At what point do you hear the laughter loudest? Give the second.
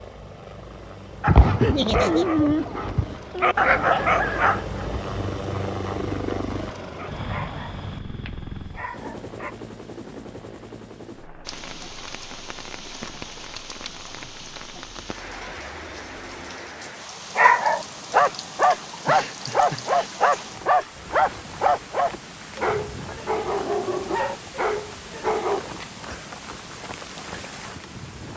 2 s.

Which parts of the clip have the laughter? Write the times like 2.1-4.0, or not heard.
1.6-2.2, 19.1-20.1.